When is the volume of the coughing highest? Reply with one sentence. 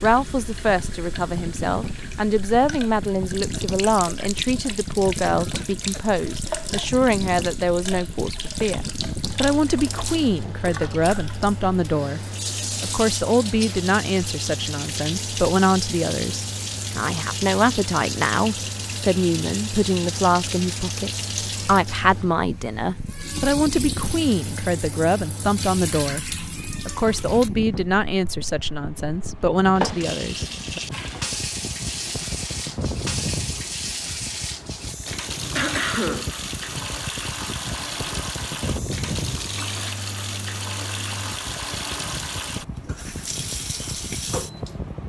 The volume of the coughing peaks at 36 seconds.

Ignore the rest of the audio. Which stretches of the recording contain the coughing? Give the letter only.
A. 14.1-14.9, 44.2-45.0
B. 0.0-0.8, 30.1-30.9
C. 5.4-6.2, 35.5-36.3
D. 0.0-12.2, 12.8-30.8
C.